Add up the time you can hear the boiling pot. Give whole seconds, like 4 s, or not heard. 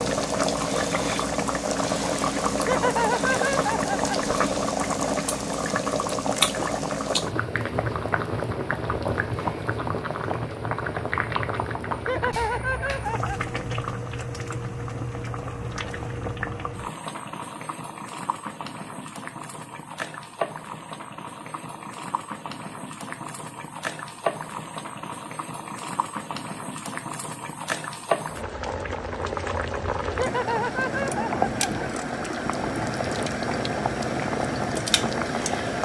36 s.